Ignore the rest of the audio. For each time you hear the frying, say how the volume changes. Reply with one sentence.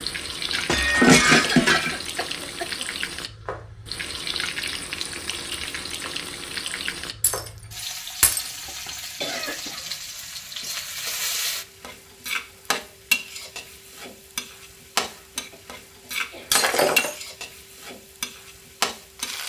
You can hear the frying from 0.0 to 19.4 s, at a steady volume.